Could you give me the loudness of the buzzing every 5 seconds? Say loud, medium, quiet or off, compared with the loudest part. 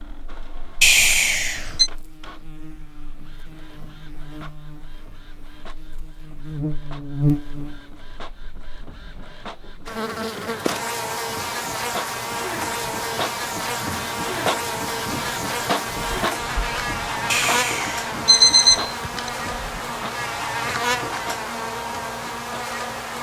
quiet, loud, loud, loud, loud.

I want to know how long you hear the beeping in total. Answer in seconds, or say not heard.
3 s.